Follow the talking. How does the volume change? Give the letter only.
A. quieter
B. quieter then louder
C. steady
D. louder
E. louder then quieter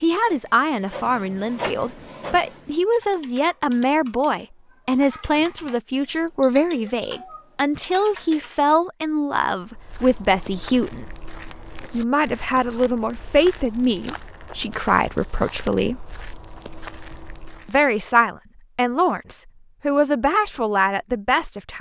C.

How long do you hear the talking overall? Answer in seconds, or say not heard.
19 s.